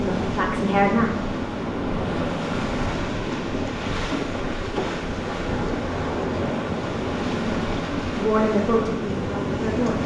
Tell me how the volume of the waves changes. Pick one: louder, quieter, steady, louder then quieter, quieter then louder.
steady.